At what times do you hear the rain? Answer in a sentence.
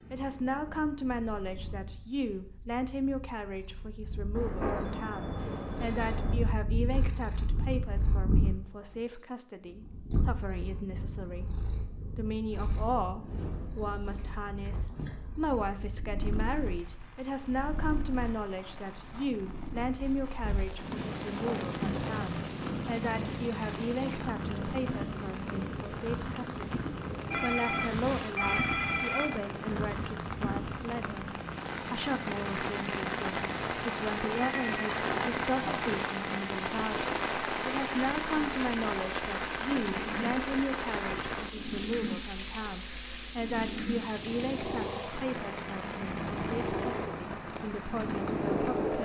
The rain can be heard from 16.1 to 48.9 s.